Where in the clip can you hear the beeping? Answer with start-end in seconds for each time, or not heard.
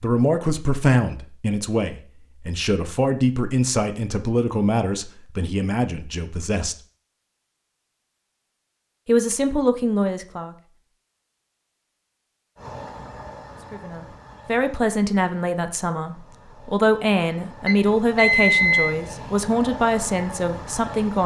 17.6-18.9.